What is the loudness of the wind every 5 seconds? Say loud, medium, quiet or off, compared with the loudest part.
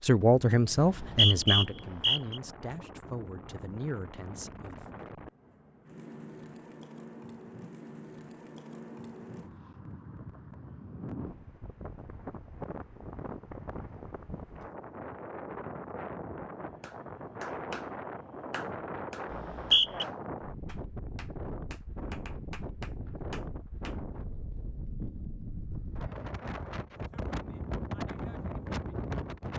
medium, medium, medium, loud, loud, loud.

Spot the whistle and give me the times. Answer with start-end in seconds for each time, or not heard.
0.8-2.4, 19.3-20.1.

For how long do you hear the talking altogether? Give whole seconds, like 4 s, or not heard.
5 s.